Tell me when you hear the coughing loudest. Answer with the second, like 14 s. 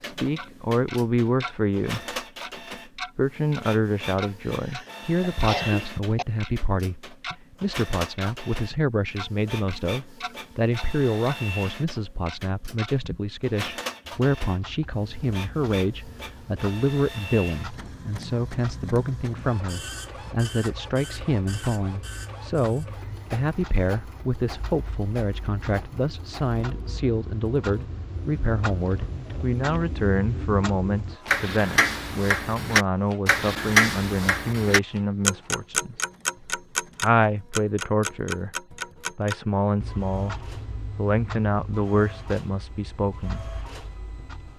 6 s.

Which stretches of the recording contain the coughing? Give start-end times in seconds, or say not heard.
4.2-6.2.